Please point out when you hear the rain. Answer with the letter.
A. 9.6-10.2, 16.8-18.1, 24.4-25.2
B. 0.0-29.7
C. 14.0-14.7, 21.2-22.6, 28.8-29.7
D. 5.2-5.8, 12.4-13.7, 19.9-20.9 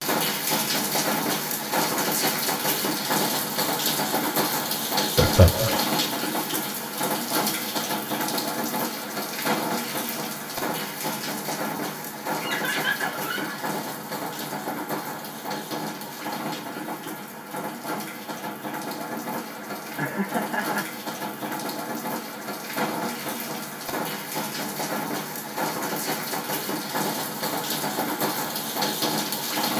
B.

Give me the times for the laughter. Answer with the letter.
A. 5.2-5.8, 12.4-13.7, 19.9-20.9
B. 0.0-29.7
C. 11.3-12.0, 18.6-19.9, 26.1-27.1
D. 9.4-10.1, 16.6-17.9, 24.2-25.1
A.